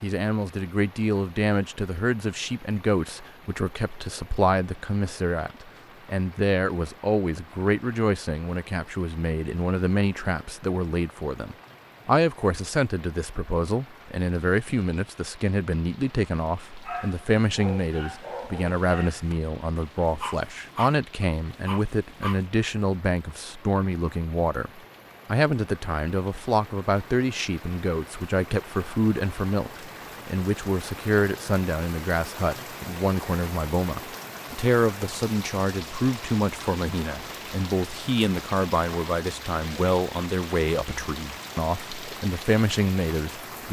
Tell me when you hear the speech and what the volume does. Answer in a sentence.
You can hear the speech from 0.0 to 43.6 s, at a steady volume.